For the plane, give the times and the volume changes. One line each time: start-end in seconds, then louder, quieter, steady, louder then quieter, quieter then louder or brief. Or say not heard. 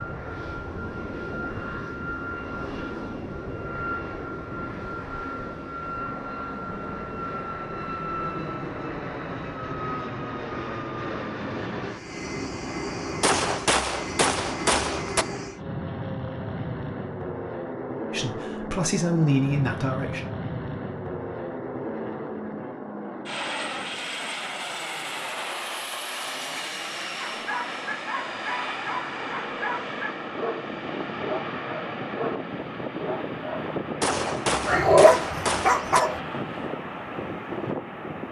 0.0-38.2 steady.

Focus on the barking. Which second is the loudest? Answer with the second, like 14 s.
35 s.